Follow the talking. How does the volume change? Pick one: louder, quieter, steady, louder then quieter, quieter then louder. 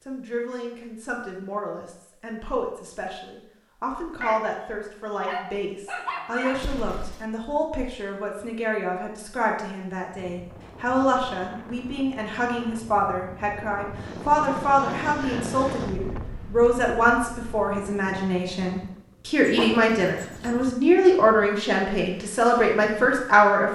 louder.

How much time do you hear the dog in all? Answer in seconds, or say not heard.
4 s.